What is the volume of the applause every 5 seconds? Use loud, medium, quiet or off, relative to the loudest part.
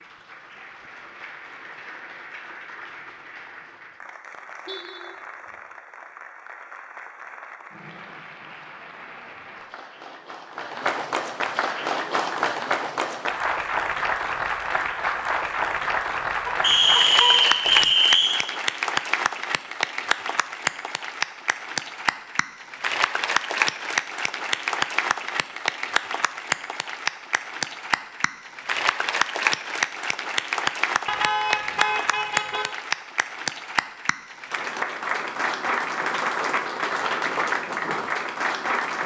quiet, quiet, loud, loud, loud, loud, loud, loud.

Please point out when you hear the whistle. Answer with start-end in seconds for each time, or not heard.
16.6-18.4.